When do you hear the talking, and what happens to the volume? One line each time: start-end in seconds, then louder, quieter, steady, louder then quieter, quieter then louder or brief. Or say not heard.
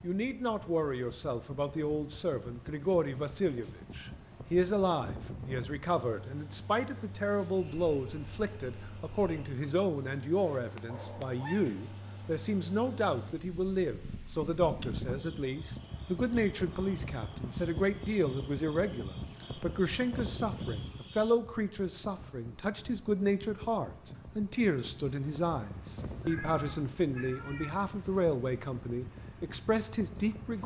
0.0-30.6 steady.